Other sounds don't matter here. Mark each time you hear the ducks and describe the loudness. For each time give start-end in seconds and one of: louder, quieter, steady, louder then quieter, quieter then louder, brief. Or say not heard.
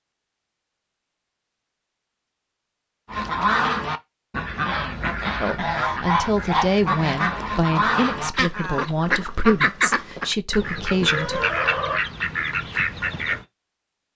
3.1-13.4 steady.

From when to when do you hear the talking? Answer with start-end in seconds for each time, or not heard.
5.4-11.4.